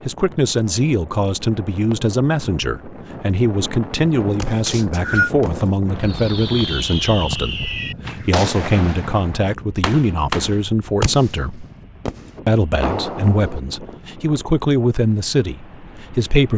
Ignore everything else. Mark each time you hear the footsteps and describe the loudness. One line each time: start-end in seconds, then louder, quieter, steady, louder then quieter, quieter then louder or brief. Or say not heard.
not heard.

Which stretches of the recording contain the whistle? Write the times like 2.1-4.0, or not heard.
4.7-5.3.